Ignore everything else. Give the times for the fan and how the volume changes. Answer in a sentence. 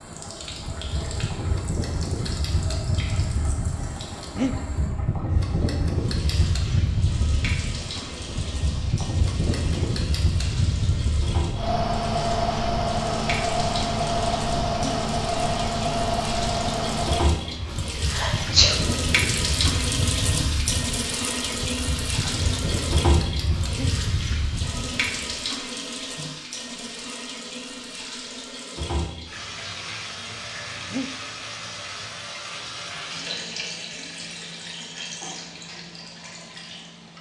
You can hear the fan from 0.0 to 25.5 s, getting louder then quieter.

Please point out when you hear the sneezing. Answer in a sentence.
The sneezing can be heard from 18.1 to 18.8 s.